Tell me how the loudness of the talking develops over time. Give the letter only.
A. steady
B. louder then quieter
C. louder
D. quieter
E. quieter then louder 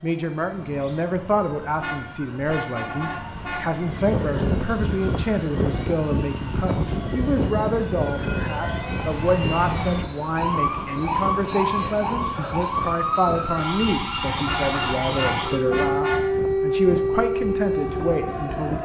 A.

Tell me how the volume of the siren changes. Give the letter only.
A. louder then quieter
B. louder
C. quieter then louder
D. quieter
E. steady
B.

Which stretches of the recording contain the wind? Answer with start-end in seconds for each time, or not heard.
3.8-18.8.